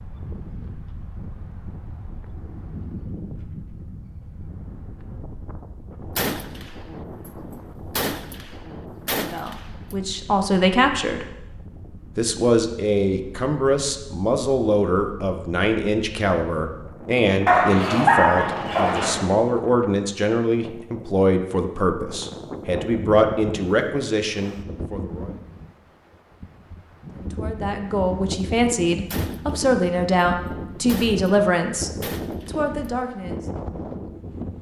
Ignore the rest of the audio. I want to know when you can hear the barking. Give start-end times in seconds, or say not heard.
17.4-19.1.